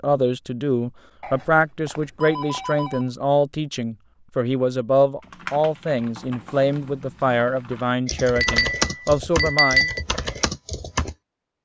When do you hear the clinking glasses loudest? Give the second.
10 s.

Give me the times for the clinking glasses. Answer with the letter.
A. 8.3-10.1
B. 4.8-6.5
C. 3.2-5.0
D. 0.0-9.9
A.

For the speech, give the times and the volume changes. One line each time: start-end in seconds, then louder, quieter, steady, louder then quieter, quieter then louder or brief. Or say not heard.
0.0-9.9 steady.